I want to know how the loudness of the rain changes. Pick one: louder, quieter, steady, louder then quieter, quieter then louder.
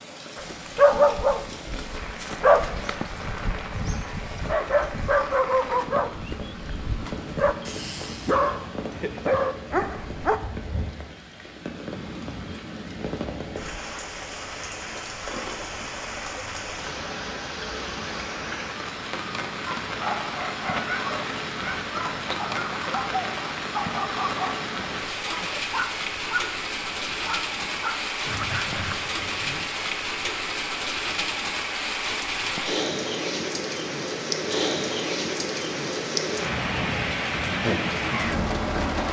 louder.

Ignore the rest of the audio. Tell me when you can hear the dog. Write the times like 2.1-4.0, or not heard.
0.3-10.4, 19.8-29.7.